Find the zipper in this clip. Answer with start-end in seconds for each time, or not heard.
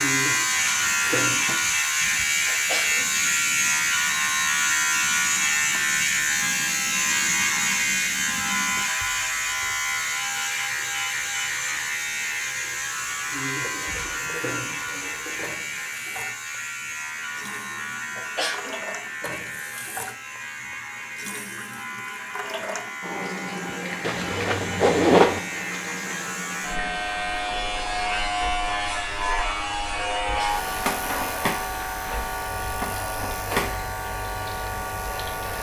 24.0-25.4.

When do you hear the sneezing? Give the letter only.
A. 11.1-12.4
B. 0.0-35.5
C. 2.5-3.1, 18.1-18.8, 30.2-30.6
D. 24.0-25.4
C.